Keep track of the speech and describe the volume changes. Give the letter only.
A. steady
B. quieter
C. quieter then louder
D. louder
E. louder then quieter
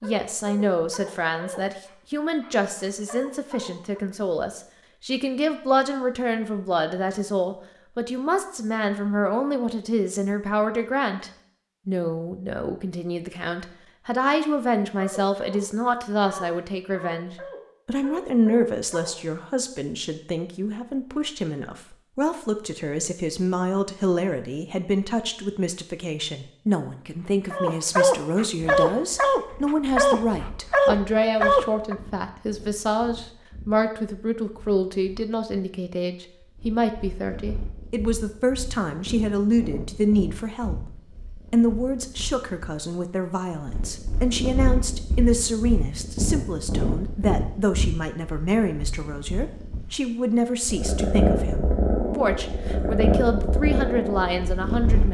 A.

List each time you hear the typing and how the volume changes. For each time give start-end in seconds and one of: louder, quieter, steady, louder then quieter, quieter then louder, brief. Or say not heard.
not heard.